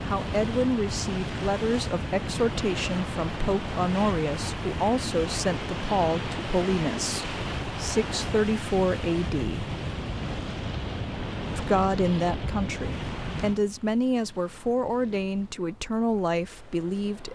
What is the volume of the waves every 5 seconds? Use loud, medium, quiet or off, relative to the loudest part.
loud, loud, loud, quiet.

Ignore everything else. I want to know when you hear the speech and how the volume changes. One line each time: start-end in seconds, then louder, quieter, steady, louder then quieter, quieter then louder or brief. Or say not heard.
0.1-9.7 steady
11.6-17.3 steady.